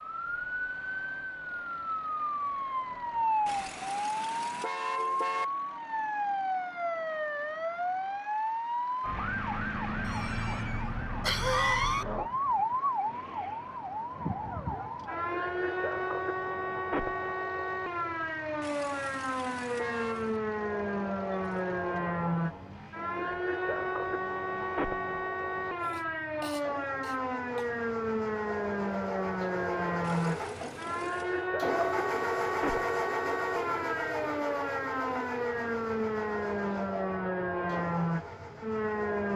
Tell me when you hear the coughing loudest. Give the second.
12 s.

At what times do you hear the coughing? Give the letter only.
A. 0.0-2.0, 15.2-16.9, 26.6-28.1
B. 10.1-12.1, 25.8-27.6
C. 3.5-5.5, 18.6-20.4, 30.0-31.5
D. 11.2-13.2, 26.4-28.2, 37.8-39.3
B.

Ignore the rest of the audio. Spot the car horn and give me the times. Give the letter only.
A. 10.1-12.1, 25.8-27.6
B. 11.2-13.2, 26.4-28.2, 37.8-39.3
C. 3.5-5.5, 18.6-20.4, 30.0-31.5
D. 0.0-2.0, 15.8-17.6
C.